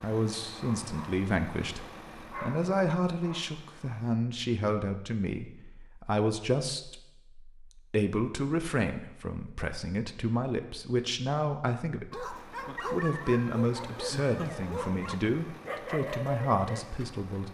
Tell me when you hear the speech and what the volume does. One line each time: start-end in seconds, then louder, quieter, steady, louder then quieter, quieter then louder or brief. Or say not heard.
0.0-17.5 steady.